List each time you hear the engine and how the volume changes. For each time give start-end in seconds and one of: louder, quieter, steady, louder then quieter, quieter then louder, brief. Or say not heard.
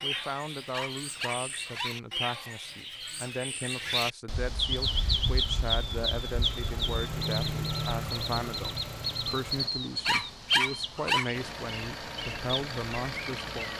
4.9-9.7 louder then quieter
11.3-13.7 brief.